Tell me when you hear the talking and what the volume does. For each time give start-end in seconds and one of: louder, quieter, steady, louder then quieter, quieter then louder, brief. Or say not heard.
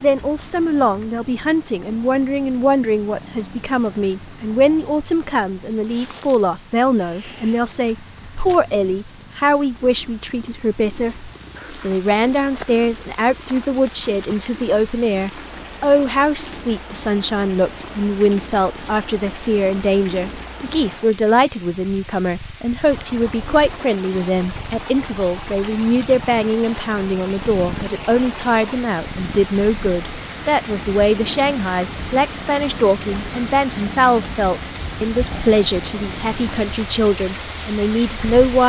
0.0-38.6 steady.